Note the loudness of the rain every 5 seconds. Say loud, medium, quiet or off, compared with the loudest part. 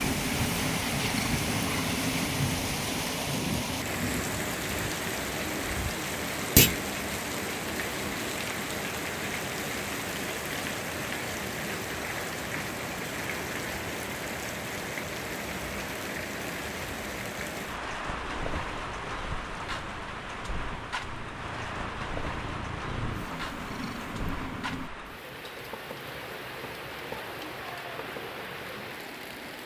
loud, loud, loud, loud, medium, medium.